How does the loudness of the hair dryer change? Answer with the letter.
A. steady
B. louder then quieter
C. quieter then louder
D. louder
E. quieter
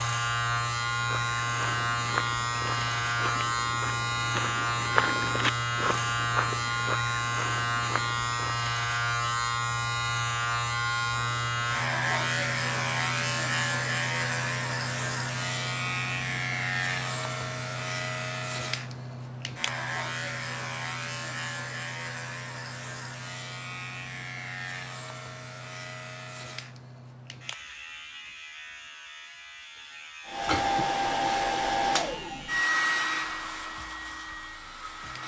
E.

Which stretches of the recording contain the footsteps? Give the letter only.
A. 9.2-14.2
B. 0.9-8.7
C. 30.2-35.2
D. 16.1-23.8
B.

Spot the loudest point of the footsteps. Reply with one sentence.
The volume of the footsteps peaks at 5 seconds.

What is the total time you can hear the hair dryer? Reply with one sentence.
The hair dryer can be heard for 5 seconds in total.